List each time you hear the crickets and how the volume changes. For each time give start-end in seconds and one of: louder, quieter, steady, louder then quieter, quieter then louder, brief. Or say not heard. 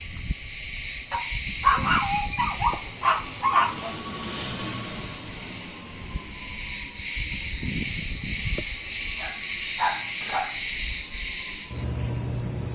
0.0-12.6 quieter then louder.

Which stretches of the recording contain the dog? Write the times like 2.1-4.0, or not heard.
1.1-4.0, 9.2-10.6.